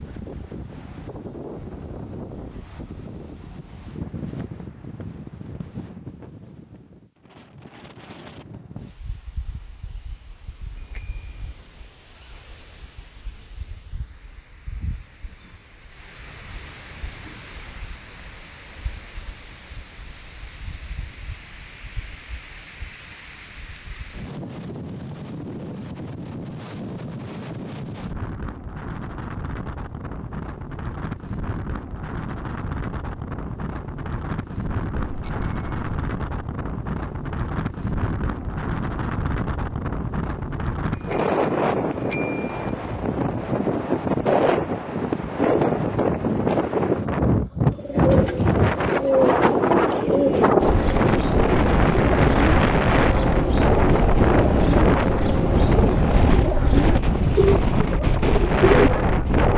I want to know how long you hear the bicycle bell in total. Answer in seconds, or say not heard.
4 s.